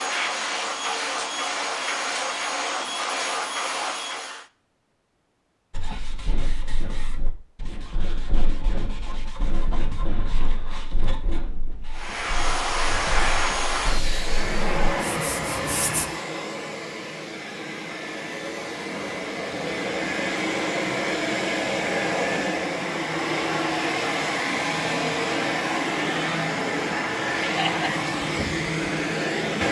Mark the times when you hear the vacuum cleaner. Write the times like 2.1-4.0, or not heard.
0.0-4.5, 11.9-29.6.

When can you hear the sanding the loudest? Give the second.
16 s.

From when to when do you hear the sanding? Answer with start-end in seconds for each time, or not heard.
5.7-16.1.